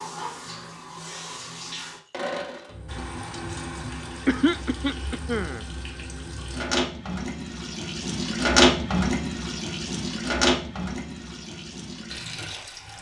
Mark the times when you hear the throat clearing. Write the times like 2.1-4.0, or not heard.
4.2-5.7.